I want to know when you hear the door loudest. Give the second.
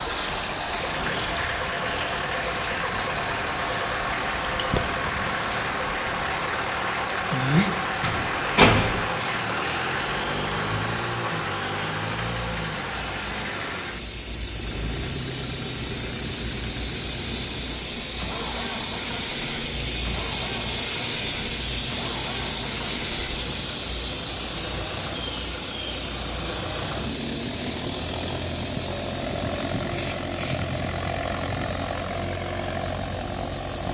9 s.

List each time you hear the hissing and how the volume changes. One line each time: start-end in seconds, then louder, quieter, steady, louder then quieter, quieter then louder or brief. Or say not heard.
0.0-33.8 louder then quieter.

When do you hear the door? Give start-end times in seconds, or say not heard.
7.5-9.1.